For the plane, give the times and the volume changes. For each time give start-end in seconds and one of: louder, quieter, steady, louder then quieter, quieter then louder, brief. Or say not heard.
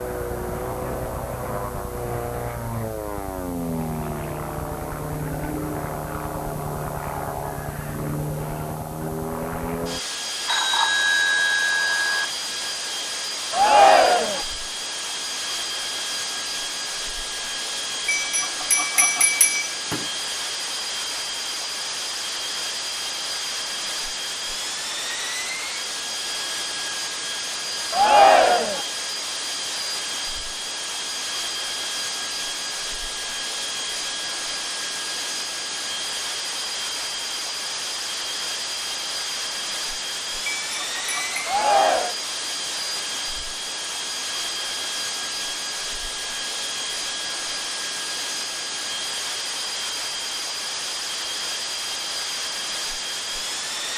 0.0-53.9 steady.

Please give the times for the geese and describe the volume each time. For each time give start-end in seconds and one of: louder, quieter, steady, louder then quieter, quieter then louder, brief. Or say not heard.
not heard.